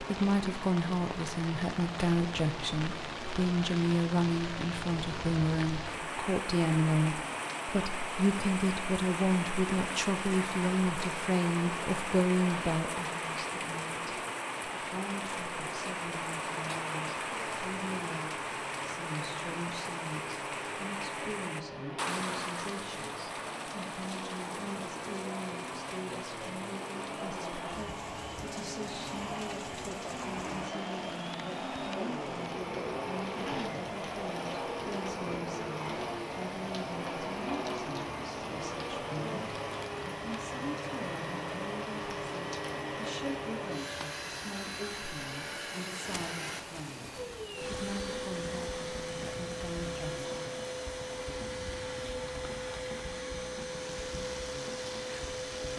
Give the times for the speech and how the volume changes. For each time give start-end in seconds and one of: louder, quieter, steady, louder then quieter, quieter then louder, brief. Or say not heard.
0.0-50.5 quieter.